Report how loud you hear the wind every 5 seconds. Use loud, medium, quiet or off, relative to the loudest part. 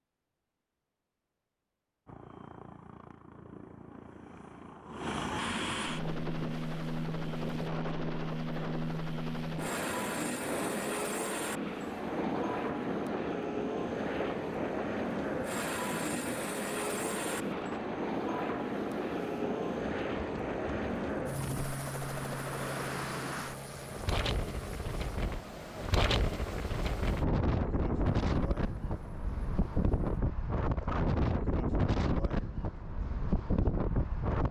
off, medium, medium, medium, medium, loud, loud.